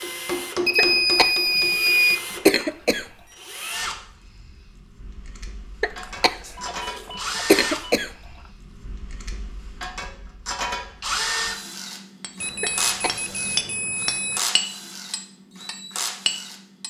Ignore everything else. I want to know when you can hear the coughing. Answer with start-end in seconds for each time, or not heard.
0.8-3.1, 5.8-8.3, 12.6-14.1.